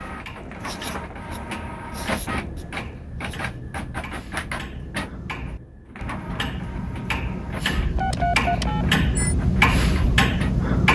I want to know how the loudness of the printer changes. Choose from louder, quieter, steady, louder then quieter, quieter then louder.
quieter.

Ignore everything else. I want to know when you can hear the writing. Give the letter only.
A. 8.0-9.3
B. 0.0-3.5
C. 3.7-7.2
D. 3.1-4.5
B.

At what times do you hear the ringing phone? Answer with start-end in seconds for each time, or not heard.
8.0-9.3.